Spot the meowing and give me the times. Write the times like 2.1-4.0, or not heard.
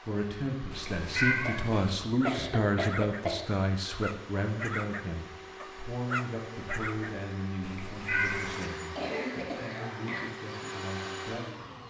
0.7-1.9, 7.6-8.6.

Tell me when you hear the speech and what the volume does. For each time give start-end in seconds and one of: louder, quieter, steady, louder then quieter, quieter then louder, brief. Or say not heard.
0.0-11.8 quieter.